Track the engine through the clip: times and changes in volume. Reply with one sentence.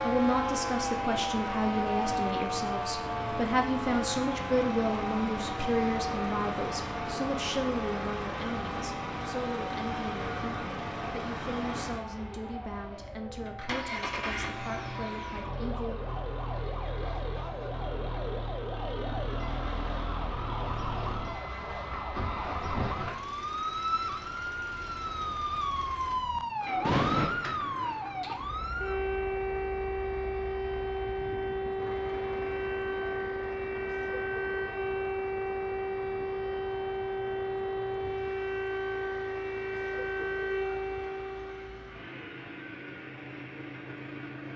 You can hear the engine from 0.0 to 44.5 s, getting quieter.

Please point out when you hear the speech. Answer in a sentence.
The speech can be heard from 0.0 to 16.0 s.